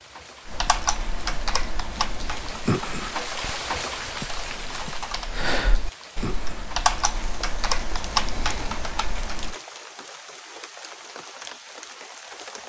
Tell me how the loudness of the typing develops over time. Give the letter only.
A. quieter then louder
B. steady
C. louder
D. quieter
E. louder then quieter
A.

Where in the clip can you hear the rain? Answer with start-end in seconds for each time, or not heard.
0.0-12.6.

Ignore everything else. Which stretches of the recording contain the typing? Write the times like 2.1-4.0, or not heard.
0.5-9.6.